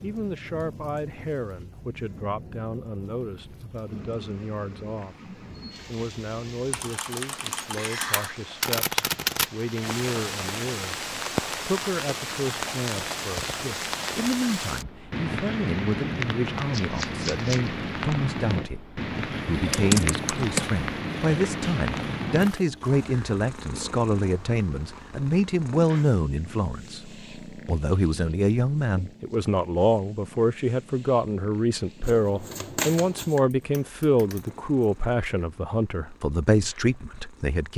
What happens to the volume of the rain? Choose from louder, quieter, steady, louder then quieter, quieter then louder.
louder.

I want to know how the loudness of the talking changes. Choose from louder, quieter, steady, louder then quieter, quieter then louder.
louder.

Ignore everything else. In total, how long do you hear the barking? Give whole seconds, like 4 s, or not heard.
not heard.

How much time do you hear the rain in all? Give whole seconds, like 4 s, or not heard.
23 s.